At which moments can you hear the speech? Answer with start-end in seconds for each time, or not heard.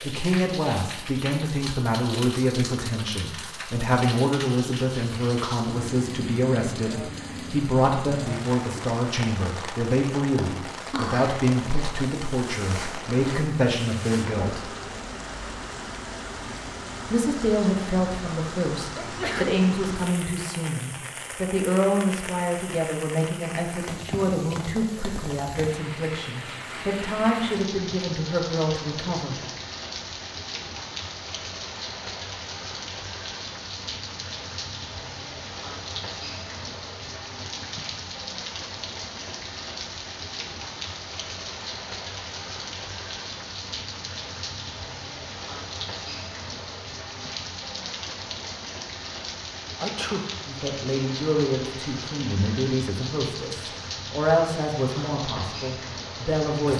0.0-14.8, 17.1-29.4, 50.5-56.7.